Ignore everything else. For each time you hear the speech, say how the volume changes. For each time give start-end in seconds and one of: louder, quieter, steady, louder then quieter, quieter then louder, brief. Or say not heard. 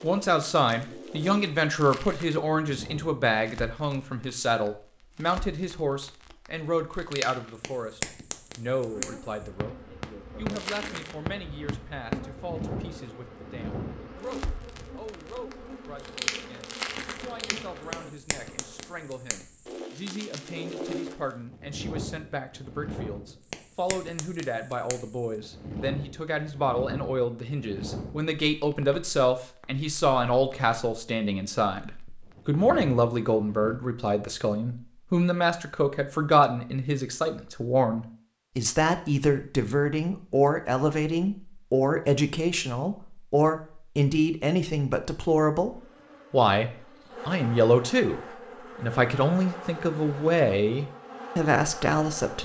0.0-52.4 quieter then louder.